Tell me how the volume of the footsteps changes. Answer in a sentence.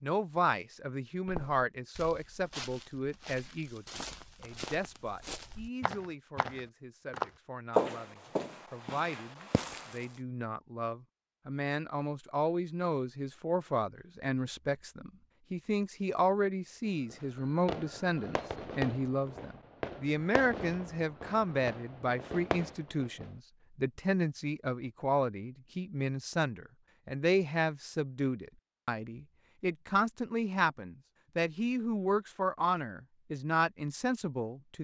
The loudness of the footsteps goes up, then down.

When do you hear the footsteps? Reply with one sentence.
The footsteps can be heard from 1.2 to 10.1 s.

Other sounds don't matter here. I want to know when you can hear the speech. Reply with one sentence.
You can hear the speech from 0.0 to 34.7 s.